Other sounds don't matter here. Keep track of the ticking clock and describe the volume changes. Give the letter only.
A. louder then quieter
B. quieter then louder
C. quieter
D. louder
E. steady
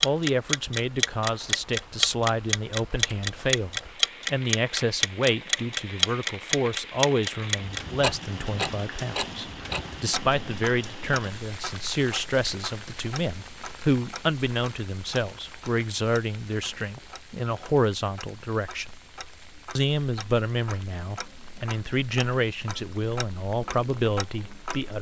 B.